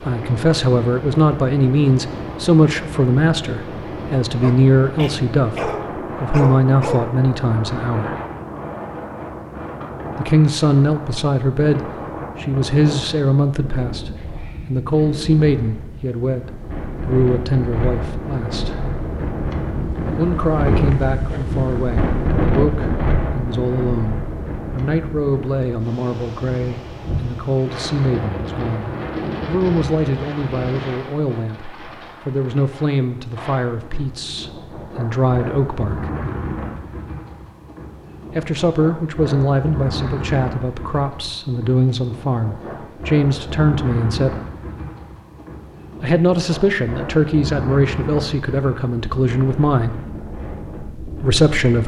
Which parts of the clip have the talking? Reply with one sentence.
You can hear the talking from 0.1 to 8.2 s, from 10.2 to 18.8 s, from 20.1 to 36.1 s, from 38.4 to 44.4 s, from 46.0 to 50.0 s and from 51.0 to 51.8 s.